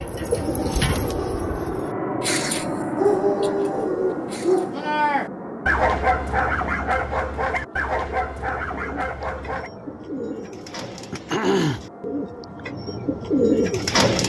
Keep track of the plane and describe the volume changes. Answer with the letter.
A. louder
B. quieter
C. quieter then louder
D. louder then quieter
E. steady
B.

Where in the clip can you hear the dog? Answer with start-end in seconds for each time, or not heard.
3.0-9.7.